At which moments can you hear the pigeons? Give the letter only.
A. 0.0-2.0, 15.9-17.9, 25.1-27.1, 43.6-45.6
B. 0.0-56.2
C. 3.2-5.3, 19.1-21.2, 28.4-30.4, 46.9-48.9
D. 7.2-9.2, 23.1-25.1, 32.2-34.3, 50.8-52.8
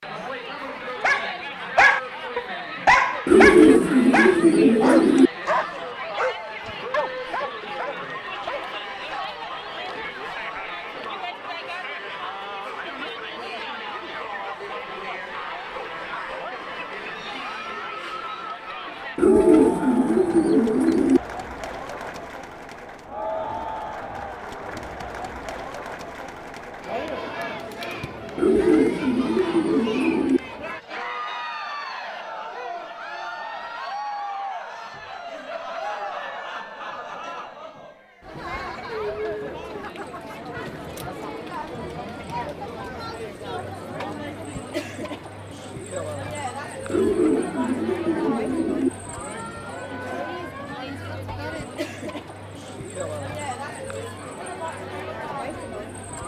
C.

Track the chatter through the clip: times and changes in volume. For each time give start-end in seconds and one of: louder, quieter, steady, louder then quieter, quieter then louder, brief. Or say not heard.
0.0-56.2 steady.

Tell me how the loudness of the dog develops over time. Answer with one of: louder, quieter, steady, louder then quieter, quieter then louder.
quieter.